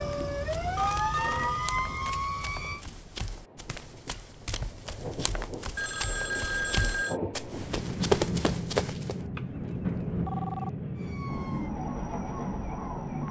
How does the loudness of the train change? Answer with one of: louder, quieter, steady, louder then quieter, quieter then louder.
louder.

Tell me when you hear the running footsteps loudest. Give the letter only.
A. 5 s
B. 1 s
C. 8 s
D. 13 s
C.